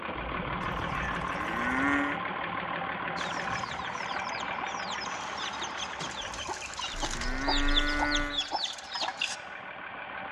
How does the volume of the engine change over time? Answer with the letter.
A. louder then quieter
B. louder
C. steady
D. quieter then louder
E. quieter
E.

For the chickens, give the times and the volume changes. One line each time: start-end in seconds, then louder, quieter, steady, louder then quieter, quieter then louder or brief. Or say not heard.
3.1-9.4 louder.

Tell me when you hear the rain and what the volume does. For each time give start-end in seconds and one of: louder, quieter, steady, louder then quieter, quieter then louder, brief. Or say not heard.
not heard.